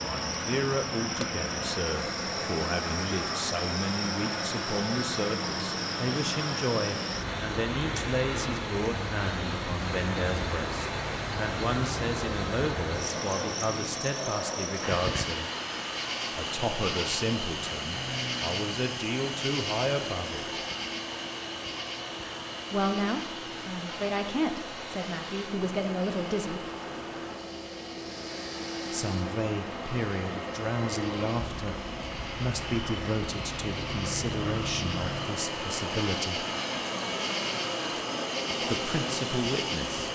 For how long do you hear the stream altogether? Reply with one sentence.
The stream can be heard for 40 seconds in total.